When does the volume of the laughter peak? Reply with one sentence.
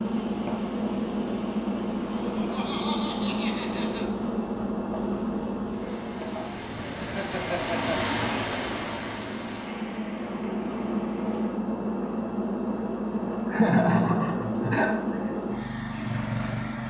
The loudest moment of the laughter is at 14 seconds.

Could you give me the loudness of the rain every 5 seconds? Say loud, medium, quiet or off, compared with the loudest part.
quiet, loud, quiet, off.